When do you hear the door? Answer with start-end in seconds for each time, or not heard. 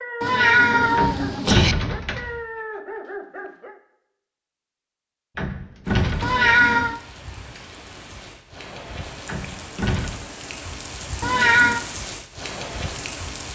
0.9-2.4, 5.3-6.8, 9.2-10.2.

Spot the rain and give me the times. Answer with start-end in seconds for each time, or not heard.
5.8-13.5.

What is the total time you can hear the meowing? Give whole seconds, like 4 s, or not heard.
3 s.